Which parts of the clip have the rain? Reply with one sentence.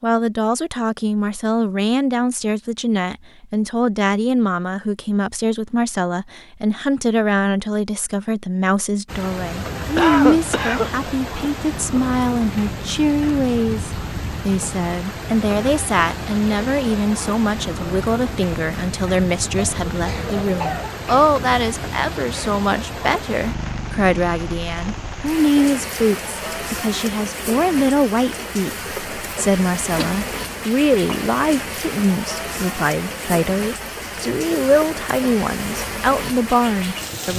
You can hear the rain from 9.1 to 37.3 s.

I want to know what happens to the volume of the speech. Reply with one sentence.
The volume of the speech stays about the same.